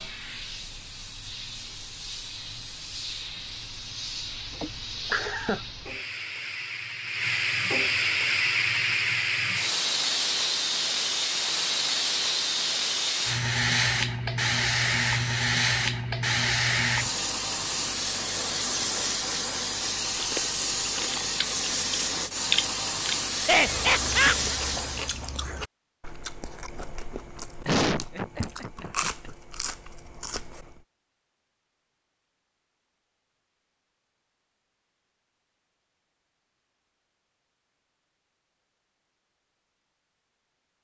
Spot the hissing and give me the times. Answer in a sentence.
You can hear the hissing from 0.0 to 25.2 s.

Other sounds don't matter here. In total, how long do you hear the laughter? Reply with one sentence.
The laughter can be heard for 4 seconds in total.